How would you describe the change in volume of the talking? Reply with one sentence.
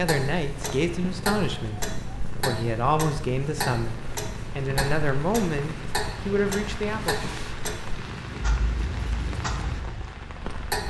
The loudness of the talking stays about the same.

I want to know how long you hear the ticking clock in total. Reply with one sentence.
The ticking clock can be heard for 11 seconds in total.